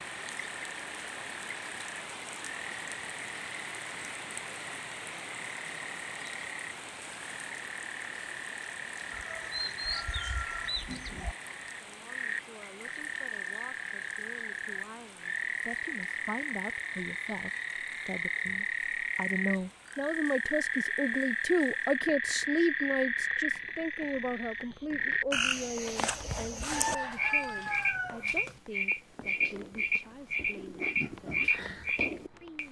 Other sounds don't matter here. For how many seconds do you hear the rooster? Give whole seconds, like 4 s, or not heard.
4 s.